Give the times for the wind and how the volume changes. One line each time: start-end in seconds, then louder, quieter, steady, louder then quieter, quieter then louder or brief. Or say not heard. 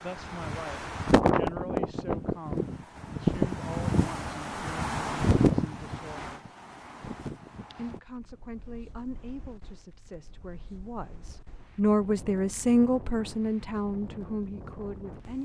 0.0-15.4 quieter then louder.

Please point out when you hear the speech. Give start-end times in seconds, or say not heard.
0.0-6.5, 7.8-15.4.